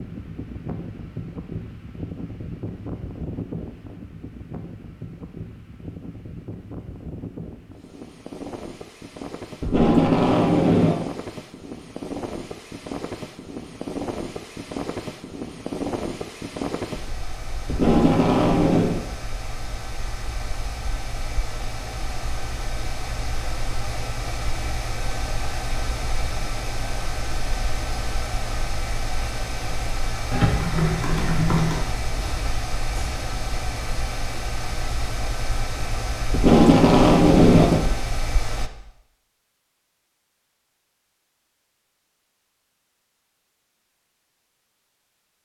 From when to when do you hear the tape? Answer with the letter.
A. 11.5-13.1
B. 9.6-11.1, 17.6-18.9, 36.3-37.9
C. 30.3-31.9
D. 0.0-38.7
B.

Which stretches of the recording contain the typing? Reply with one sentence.
You can hear the typing from 30.3 to 31.9 s.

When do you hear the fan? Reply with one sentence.
You can hear the fan from 0.0 to 38.7 s.